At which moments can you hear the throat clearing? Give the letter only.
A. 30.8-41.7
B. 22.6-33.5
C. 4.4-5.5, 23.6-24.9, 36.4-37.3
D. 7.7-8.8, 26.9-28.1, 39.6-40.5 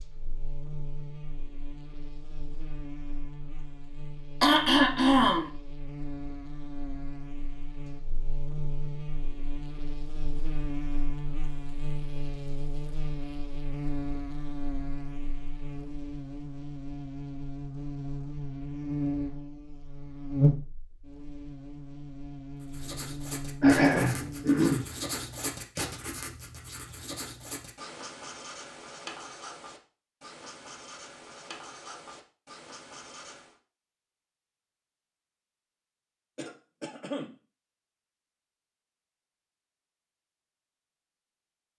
C.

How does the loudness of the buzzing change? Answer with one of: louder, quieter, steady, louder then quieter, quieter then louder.
louder.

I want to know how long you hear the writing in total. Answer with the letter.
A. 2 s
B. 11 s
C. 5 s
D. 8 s
B.